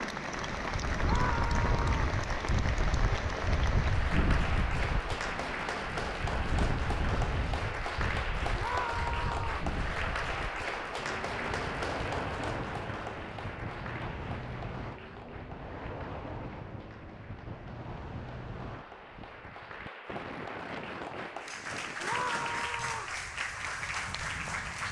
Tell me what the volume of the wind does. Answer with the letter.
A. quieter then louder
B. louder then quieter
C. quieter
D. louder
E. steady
C.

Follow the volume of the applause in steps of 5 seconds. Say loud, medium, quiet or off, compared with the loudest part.
loud, loud, loud, quiet, loud.